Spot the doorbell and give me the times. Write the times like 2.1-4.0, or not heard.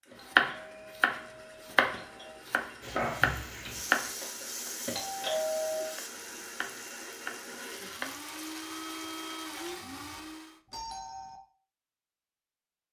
0.1-2.4, 4.8-6.0, 9.6-11.4.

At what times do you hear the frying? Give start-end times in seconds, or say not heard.
2.8-10.2.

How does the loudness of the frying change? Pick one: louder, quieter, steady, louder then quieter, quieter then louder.
quieter.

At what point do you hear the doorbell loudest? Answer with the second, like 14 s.
5 s.